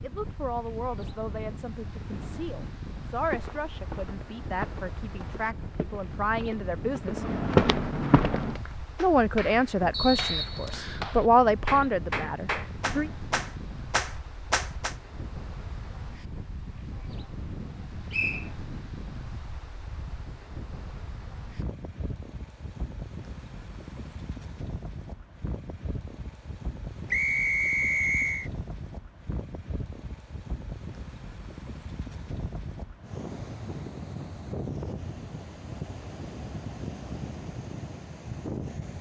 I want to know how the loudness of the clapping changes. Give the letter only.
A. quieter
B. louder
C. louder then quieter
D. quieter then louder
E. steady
B.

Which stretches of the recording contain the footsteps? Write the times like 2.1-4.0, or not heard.
3.1-8.6.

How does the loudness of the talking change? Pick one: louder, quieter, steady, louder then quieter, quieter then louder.
louder.